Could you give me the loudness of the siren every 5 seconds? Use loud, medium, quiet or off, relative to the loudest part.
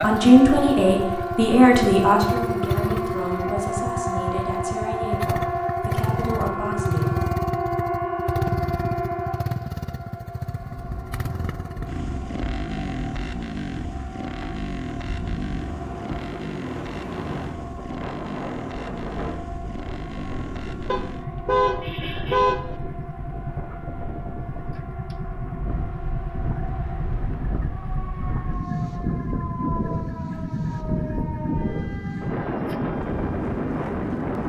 loud, loud, quiet, quiet, quiet, quiet, quiet.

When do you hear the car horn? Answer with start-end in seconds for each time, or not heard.
20.9-22.6.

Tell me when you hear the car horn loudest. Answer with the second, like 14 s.
22 s.